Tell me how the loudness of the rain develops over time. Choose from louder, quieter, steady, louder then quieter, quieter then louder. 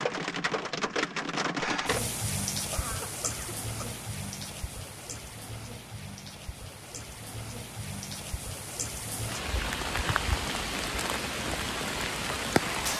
quieter then louder.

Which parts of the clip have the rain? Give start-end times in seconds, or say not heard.
0.0-12.9.